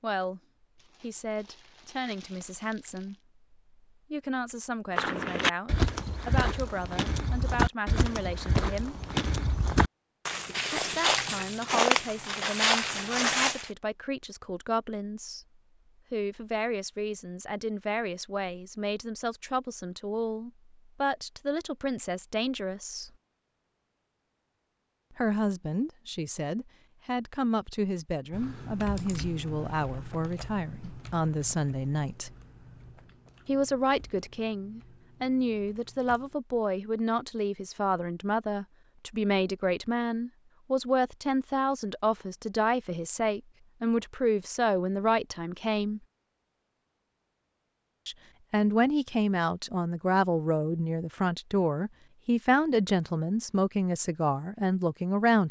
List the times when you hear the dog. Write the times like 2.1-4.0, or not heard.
not heard.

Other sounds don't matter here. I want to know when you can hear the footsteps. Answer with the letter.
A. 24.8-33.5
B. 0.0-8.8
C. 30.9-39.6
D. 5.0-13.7
D.